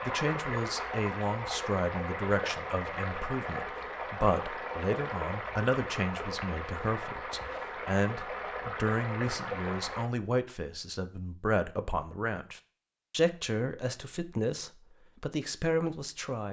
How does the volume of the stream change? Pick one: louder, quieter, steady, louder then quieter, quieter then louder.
steady.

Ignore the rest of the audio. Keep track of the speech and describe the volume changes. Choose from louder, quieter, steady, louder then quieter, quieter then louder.
steady.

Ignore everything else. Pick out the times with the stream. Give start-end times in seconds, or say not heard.
0.0-10.1.